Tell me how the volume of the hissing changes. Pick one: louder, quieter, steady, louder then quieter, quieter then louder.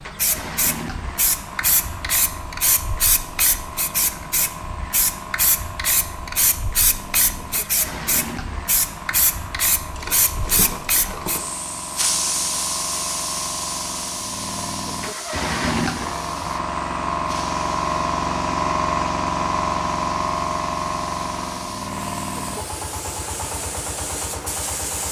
quieter.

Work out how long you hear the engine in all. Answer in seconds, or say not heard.
25 s.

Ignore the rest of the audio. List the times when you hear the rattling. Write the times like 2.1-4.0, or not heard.
9.9-11.5.